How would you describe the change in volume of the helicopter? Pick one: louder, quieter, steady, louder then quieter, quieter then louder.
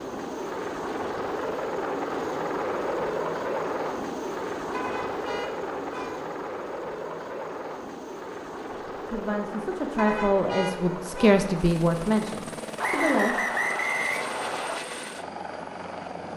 quieter.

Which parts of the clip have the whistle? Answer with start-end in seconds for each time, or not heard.
12.8-14.8.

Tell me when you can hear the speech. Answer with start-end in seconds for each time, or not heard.
9.1-13.5.